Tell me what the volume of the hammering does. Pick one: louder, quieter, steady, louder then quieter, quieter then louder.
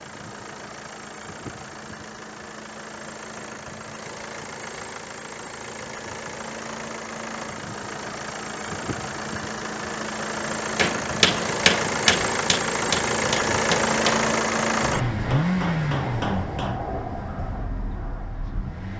quieter.